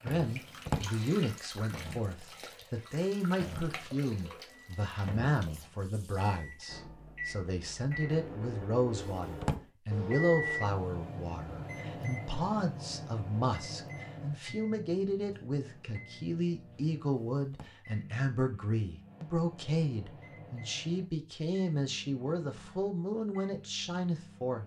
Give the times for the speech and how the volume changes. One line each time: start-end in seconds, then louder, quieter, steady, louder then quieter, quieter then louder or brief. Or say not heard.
0.0-24.6 steady.